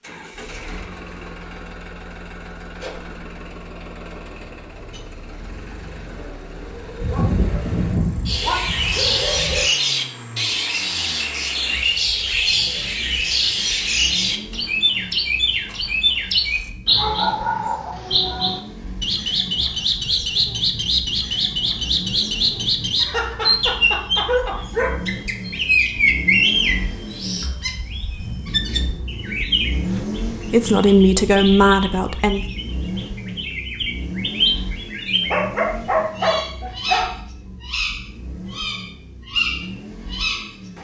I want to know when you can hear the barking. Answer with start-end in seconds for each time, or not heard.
7.0-9.7, 22.9-24.9, 35.1-37.1.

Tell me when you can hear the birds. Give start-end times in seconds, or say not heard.
8.2-40.7.